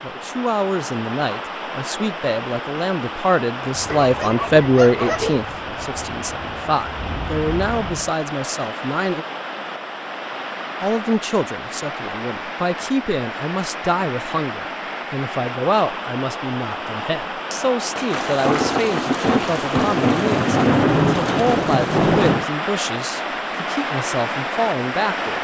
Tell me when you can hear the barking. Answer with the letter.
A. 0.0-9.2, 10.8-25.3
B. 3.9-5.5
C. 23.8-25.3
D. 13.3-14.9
B.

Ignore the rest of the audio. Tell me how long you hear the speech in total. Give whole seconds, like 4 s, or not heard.
24 s.